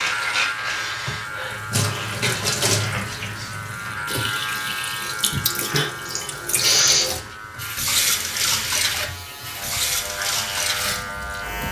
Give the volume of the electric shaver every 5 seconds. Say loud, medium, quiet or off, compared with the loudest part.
loud, medium, loud.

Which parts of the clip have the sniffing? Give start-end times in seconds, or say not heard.
0.7-3.0, 6.0-7.1.